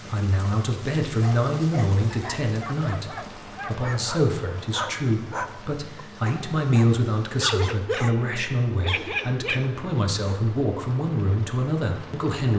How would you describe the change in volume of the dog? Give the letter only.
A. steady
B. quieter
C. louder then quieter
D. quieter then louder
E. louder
E.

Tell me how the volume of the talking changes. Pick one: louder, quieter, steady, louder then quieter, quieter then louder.
steady.